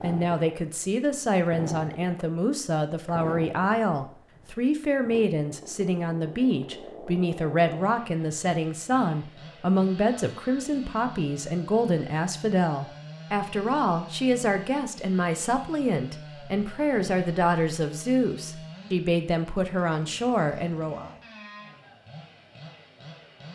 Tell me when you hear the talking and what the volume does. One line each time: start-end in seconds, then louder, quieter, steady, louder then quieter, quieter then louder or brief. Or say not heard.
0.0-21.1 steady.